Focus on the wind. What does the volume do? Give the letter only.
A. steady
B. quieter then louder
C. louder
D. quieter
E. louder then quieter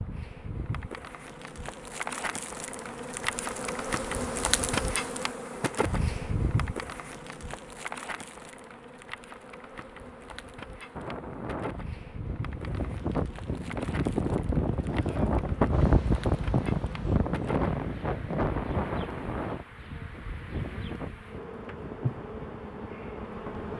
E.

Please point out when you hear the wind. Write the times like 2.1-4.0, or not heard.
10.9-23.7.